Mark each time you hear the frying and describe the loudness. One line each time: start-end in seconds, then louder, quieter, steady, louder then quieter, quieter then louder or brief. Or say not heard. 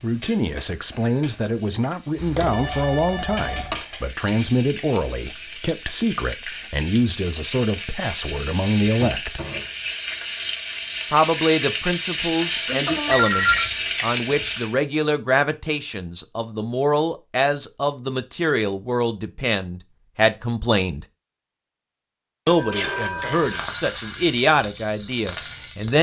0.0-14.8 louder
23.2-25.9 brief.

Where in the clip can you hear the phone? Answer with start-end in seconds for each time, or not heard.
2.1-3.9, 13.1-13.7, 22.4-23.8.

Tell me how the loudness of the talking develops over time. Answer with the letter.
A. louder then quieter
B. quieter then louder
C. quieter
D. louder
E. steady
E.